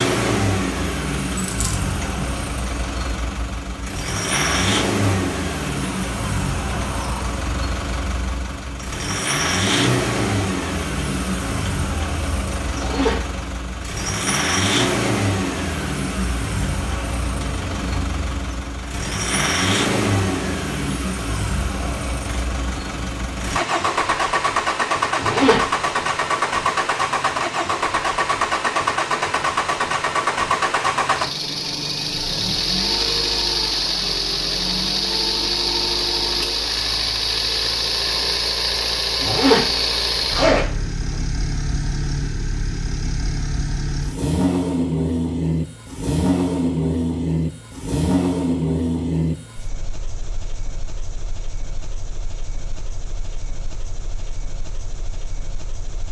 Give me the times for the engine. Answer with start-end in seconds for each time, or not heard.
0.0-56.0.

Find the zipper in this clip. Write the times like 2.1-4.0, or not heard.
12.8-13.3, 25.1-25.8, 39.2-41.1.